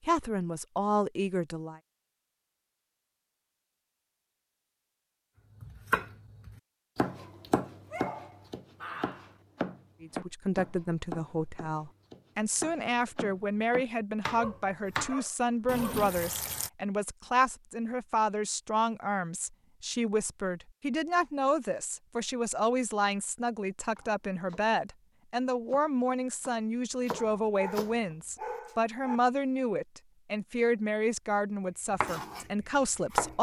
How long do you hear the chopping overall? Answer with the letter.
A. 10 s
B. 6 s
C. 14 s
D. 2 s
C.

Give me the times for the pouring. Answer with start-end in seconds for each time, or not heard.
15.7-16.7.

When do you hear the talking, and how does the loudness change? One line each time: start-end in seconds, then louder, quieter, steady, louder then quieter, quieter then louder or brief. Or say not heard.
0.1-1.8 brief
10.0-33.3 steady.